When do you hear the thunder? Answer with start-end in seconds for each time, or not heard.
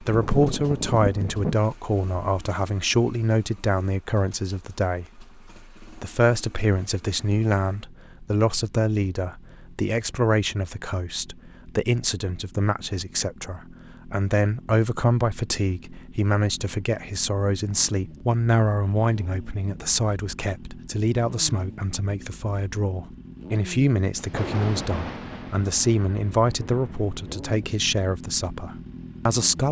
0.1-1.6, 24.1-27.2.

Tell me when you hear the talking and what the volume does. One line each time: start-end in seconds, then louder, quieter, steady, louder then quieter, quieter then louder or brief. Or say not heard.
0.0-29.6 steady.